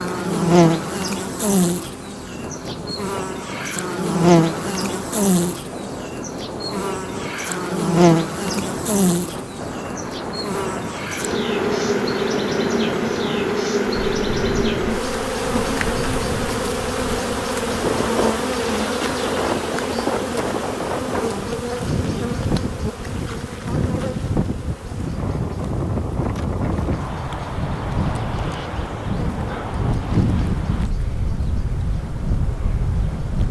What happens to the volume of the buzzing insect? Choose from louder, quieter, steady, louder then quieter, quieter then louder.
quieter.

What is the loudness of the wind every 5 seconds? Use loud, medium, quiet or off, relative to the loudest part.
medium, medium, medium, loud, loud, loud, loud.